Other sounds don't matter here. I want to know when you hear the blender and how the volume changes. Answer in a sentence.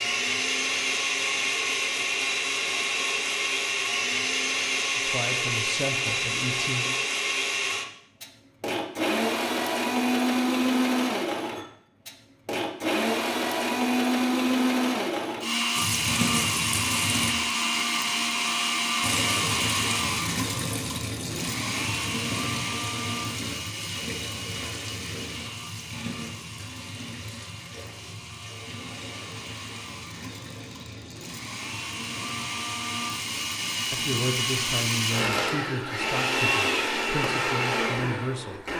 You can hear the blender from 0.0 to 38.7 s, getting quieter then louder.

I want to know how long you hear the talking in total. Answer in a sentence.
The talking can be heard for 7 seconds in total.